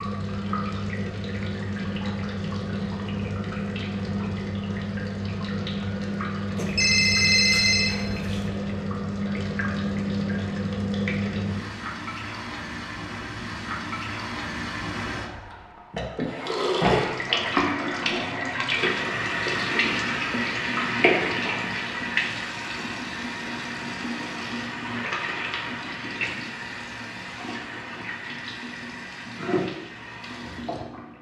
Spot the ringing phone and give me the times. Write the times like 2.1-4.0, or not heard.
6.5-8.5.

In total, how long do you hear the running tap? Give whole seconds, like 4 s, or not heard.
31 s.